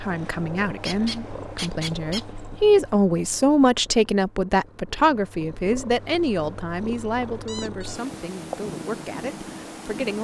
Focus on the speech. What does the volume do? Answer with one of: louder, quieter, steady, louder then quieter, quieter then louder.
louder then quieter.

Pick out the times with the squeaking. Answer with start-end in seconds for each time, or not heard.
0.8-2.2, 7.5-8.1.